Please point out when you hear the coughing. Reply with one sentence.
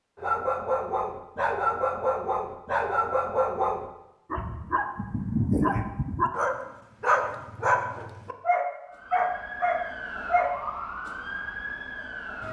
You can't hear the coughing here.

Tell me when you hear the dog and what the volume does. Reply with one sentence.
You can hear the dog from 0.2 to 10.6 s, at a steady volume.